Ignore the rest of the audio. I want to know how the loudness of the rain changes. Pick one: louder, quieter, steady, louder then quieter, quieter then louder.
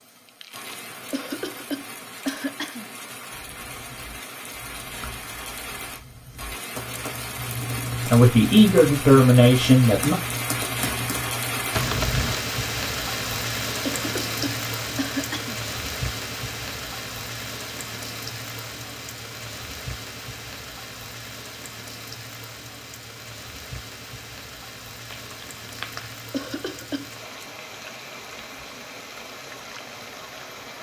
louder then quieter.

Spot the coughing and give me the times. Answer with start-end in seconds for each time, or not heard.
1.1-2.9, 13.8-15.6, 26.3-27.5.